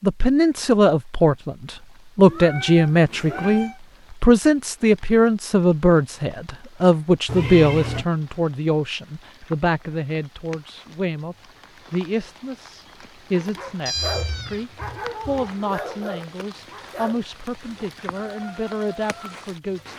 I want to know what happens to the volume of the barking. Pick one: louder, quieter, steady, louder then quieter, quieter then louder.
quieter.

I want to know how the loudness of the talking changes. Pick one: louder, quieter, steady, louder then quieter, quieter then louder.
quieter.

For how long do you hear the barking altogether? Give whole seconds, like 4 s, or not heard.
6 s.